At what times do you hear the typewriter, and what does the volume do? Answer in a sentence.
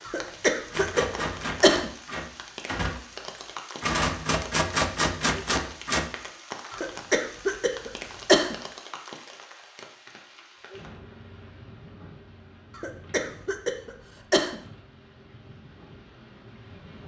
The typewriter can be heard from 0.7 to 6.1 s, getting quieter then louder.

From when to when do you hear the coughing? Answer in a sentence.
You can hear the coughing from 0.1 to 1.9 s, from 6.7 to 8.6 s and from 12.8 to 14.6 s.